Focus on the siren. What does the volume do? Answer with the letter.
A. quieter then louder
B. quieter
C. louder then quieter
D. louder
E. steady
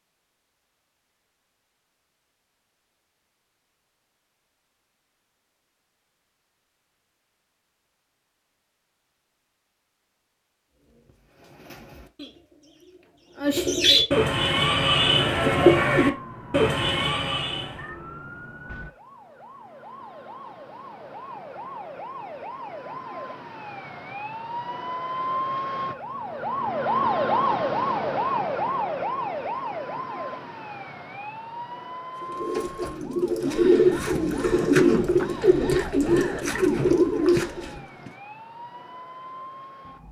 C.